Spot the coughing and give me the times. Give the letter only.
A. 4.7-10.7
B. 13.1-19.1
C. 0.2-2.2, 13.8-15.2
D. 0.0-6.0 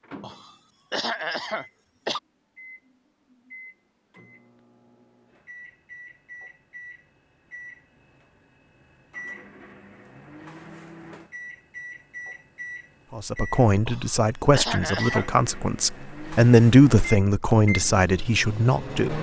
C.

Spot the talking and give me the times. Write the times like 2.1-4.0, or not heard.
13.1-19.1.